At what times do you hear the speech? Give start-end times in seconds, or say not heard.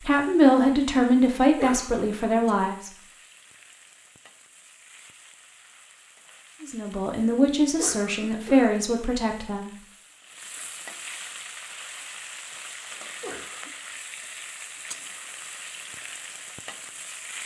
0.0-2.9, 6.6-9.8.